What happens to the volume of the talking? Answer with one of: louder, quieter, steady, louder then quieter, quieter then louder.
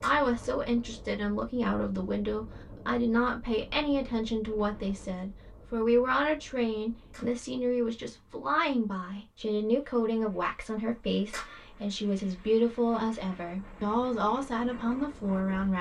steady.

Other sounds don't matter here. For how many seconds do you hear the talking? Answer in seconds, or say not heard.
16 s.